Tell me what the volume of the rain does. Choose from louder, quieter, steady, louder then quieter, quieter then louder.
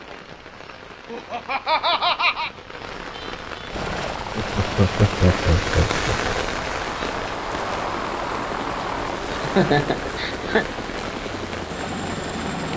louder then quieter.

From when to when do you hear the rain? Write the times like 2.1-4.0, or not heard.
0.0-12.7.